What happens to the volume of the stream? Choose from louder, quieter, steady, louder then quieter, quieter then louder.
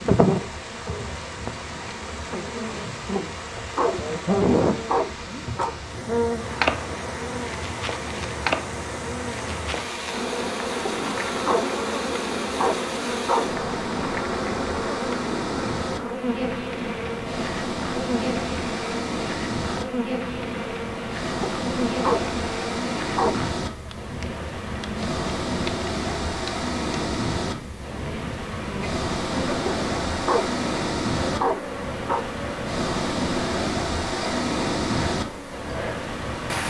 louder.